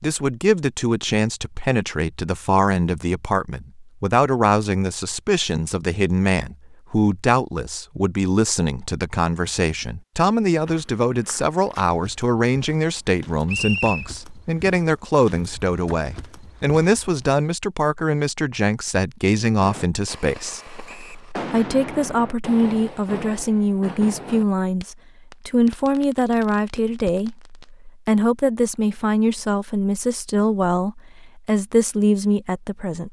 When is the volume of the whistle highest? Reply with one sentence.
The loudest moment of the whistle is at 14 seconds.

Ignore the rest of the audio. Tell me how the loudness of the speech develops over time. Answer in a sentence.
The loudness of the speech stays about the same.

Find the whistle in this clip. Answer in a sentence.
You can hear the whistle from 13.4 to 14.1 s and from 20.9 to 21.3 s.